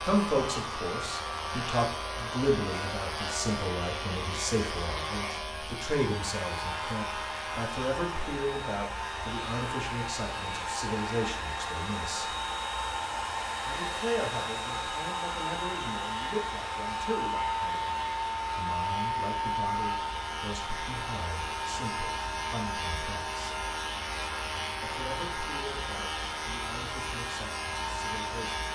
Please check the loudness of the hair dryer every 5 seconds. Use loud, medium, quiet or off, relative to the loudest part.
medium, medium, loud, loud, medium, medium.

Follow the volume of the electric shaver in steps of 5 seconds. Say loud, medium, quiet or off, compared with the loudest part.
loud, loud, medium, medium, loud, loud.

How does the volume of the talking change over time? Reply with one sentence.
The loudness of the talking goes down.